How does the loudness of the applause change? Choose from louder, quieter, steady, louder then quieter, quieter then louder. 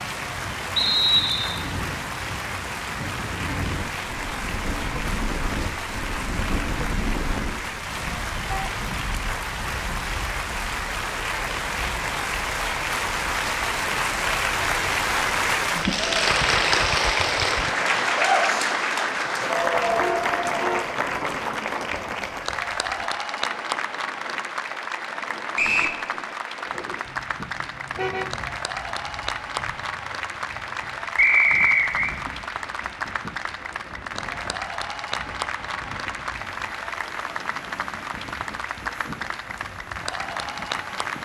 louder then quieter.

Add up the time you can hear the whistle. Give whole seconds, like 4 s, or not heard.
2 s.